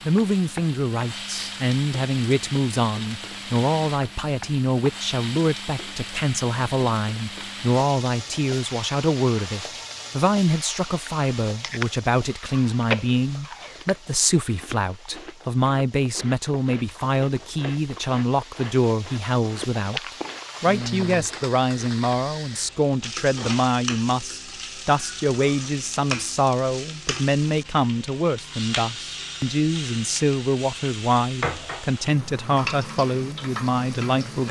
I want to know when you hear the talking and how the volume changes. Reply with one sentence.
The talking can be heard from 0.1 to 34.4 s, at a steady volume.